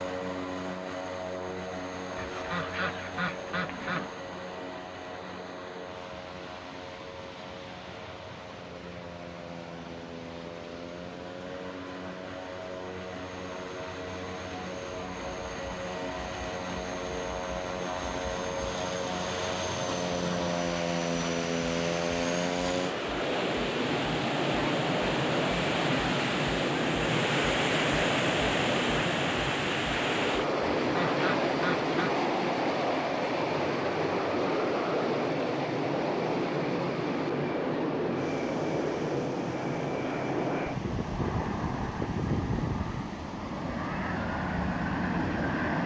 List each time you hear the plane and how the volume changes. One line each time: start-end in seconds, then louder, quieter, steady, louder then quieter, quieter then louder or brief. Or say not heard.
0.0-45.8 louder.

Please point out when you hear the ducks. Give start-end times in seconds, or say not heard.
2.1-4.1, 30.8-32.1.